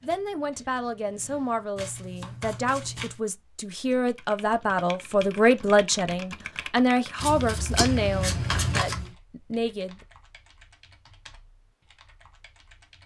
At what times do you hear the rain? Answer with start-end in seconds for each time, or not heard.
not heard.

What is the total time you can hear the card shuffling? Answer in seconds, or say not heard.
3 s.